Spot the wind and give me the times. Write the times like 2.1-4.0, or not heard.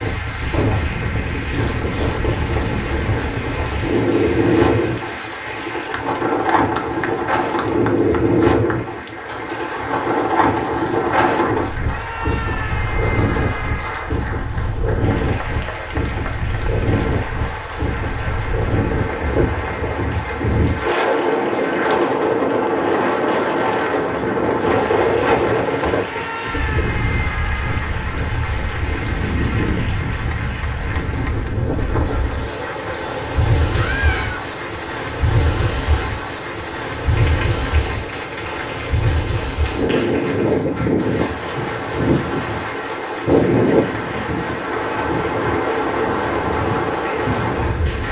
0.0-48.0.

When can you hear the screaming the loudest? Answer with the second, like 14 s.
34 s.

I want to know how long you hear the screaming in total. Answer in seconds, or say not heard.
5 s.